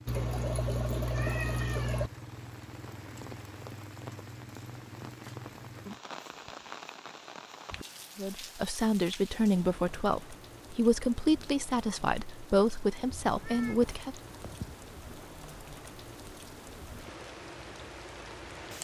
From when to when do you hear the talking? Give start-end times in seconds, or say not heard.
8.2-14.2.